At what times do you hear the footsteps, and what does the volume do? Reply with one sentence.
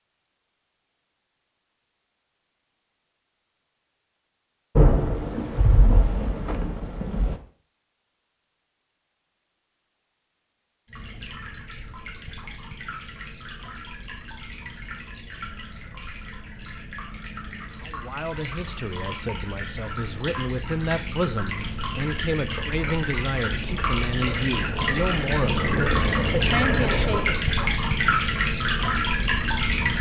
The footsteps can't be heard in this clip.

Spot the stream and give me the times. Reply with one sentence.
The stream can be heard from 10.8 to 29.9 s.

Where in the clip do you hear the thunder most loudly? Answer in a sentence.
The loudest moment of the thunder is at 5 seconds.